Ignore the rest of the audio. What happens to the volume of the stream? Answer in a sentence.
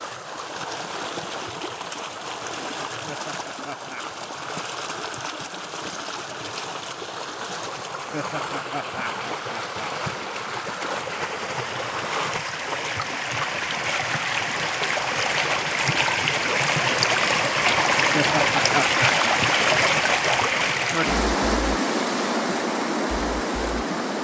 The volume of the stream goes up.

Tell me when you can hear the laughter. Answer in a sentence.
The laughter can be heard from 3.0 to 4.2 s, from 8.1 to 9.9 s and from 18.1 to 19.2 s.